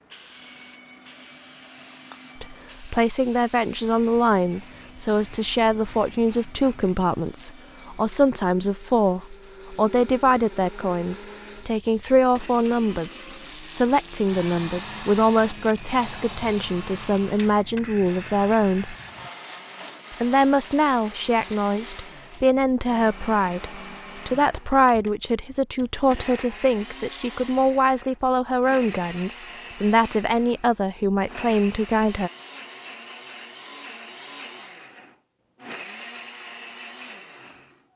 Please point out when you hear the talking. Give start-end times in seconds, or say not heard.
2.4-18.9, 20.2-32.3.